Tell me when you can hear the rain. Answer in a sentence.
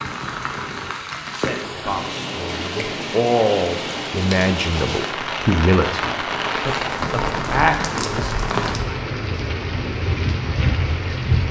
The rain can be heard from 0.0 to 11.4 s.